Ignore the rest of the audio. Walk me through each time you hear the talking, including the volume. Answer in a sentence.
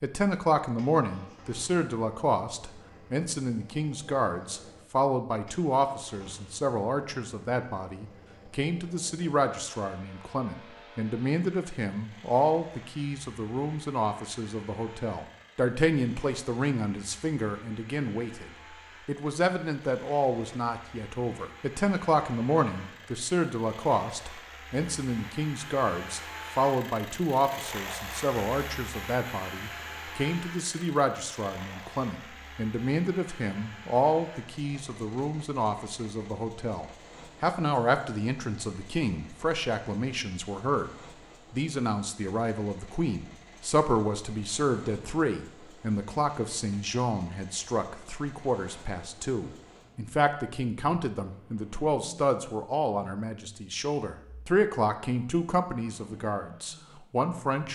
You can hear the talking from 0.0 to 57.7 s, at a steady volume.